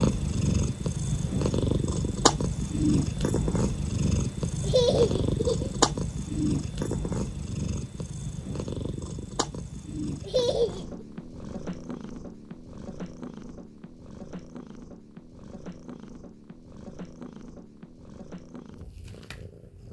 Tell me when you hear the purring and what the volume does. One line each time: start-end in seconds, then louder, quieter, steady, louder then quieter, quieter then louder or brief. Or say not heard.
0.0-19.8 quieter.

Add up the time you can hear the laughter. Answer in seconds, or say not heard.
2 s.